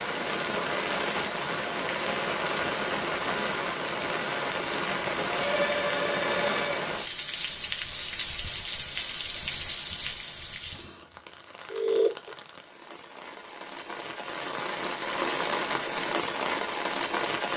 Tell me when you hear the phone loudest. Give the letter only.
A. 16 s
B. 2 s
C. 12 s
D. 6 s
C.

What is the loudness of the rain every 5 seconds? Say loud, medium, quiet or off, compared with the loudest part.
loud, loud, medium, loud.